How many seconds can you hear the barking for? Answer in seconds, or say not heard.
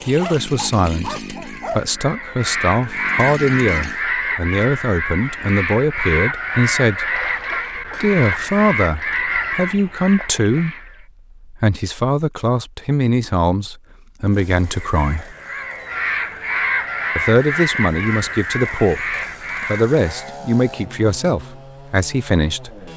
2 s.